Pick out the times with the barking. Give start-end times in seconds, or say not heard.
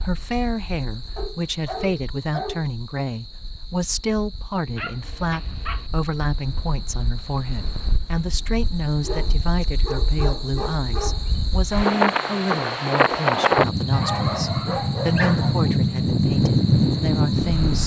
1.1-2.6, 4.8-5.9, 9.0-11.4, 13.9-15.7.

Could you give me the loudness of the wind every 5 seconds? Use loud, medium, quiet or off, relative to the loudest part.
quiet, quiet, loud, loud.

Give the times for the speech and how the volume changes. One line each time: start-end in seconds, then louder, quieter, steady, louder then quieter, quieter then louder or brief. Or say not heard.
0.0-17.8 steady.